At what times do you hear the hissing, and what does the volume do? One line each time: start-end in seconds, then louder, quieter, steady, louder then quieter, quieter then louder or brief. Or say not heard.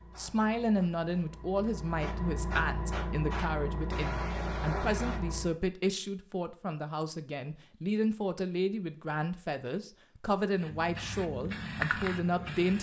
0.0-5.5 louder
10.6-12.7 brief.